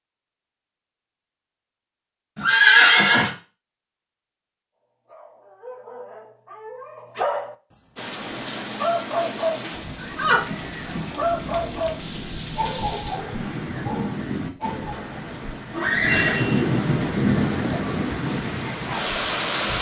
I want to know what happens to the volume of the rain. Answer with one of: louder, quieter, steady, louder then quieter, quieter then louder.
louder.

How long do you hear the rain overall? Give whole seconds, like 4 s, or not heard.
12 s.